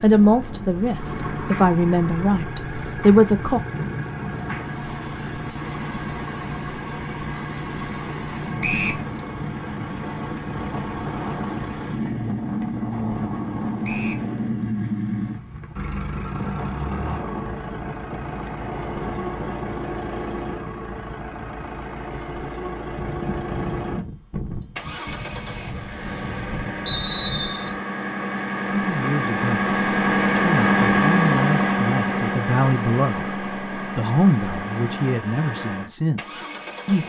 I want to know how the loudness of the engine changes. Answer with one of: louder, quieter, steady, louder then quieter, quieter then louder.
louder.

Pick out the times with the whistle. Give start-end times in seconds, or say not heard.
8.6-9.1, 13.8-14.2, 26.9-27.7.